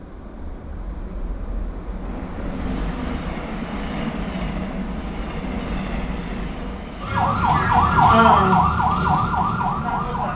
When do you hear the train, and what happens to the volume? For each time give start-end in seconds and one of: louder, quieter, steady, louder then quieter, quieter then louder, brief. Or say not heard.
0.0-10.3 louder then quieter.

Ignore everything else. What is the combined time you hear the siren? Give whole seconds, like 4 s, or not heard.
3 s.